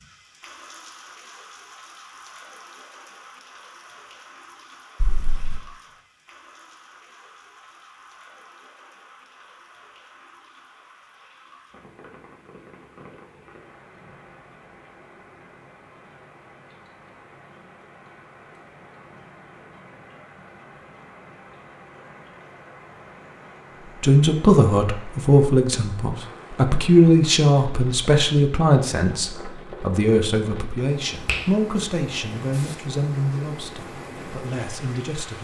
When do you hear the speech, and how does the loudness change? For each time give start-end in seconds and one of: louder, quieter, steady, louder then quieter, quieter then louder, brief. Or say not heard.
24.0-35.3 quieter.